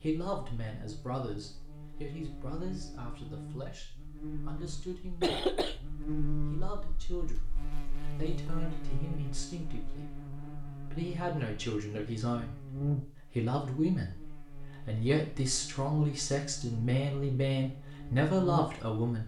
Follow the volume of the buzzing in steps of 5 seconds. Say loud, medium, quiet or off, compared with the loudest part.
medium, loud, loud, loud.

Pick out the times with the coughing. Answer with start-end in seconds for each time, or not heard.
4.6-5.8.